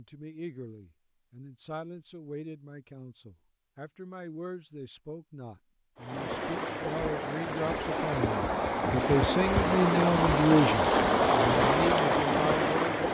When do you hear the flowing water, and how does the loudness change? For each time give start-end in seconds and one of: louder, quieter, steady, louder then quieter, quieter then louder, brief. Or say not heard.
6.0-13.0 louder.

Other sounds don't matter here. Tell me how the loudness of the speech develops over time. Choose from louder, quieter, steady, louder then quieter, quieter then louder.
louder.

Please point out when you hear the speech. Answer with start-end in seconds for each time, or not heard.
0.0-12.9.